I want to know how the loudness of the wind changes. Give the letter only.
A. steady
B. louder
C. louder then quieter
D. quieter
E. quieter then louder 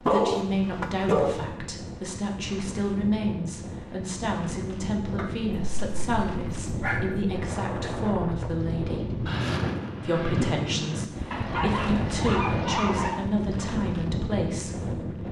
B.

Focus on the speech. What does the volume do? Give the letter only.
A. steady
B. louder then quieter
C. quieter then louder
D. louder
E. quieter
A.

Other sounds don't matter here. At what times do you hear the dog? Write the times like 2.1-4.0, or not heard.
0.1-1.4, 5.2-7.5, 11.3-13.2.